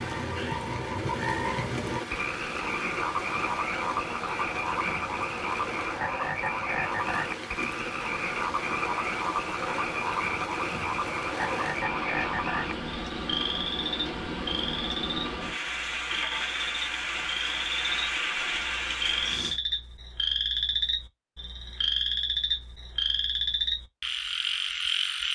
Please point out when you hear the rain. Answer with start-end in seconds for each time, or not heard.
0.0-19.6.